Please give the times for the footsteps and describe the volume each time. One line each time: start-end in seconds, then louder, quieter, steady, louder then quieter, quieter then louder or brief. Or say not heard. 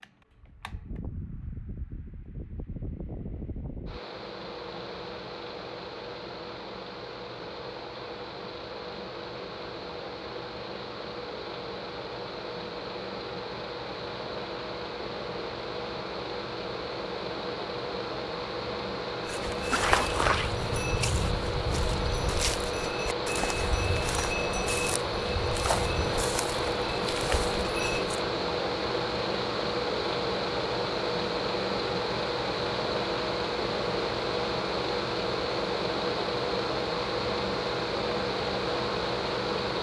19.2-28.2 quieter.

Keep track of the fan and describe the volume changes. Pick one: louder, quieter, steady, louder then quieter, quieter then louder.
louder.